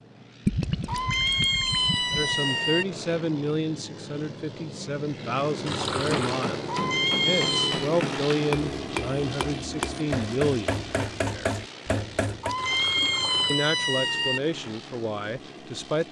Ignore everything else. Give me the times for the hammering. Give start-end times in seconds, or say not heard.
6.0-12.6.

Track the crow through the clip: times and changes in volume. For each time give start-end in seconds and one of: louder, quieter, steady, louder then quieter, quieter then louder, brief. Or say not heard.
not heard.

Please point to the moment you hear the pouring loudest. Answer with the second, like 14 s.
1 s.